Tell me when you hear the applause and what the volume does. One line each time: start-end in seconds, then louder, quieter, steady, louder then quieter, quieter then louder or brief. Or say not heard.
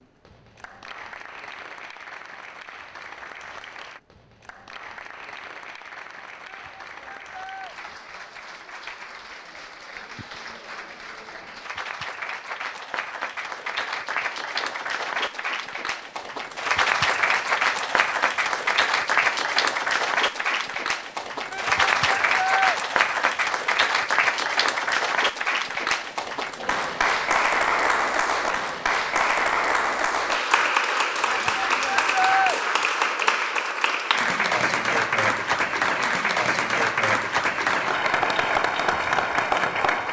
0.0-40.0 louder.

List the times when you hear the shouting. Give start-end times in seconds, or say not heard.
6.5-7.7, 21.5-22.8, 31.3-32.5.